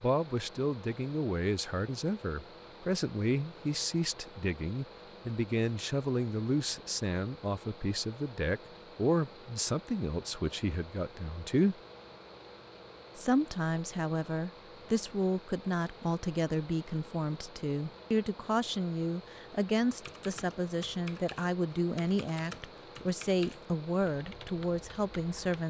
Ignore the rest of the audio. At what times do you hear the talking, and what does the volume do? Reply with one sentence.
The talking can be heard from 0.0 to 11.8 s, at a steady volume; and from 13.2 to 25.6 s, at a steady volume.